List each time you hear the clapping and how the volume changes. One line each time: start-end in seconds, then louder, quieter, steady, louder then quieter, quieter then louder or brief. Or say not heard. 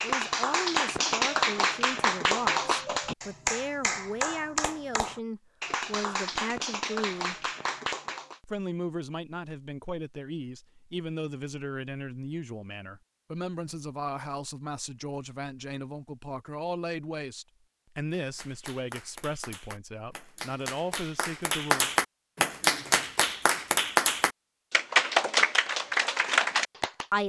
0.0-8.3 quieter
18.1-27.1 louder.